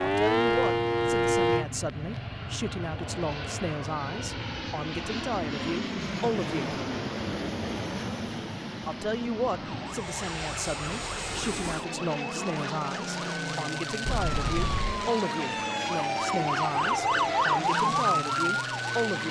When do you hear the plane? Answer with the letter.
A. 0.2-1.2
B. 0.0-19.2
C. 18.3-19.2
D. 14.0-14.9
B.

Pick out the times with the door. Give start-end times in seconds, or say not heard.
14.0-14.9.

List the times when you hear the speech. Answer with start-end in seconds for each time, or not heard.
0.0-6.8, 8.8-19.2.